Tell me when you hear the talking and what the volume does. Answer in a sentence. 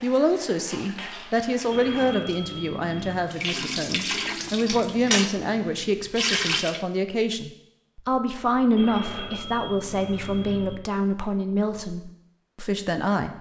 You can hear the talking from 0.0 to 13.3 s, at a steady volume.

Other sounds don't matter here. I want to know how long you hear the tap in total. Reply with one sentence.
You can hear the tap for 7 seconds altogether.